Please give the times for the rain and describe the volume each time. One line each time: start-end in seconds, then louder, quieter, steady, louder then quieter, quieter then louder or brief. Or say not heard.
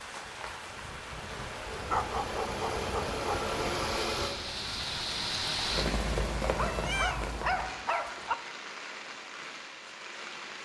0.0-10.5 louder then quieter.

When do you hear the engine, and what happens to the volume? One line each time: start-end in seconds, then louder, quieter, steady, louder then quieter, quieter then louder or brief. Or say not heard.
0.0-4.3 louder.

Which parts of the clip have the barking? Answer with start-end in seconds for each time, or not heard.
1.9-3.5, 6.5-8.3.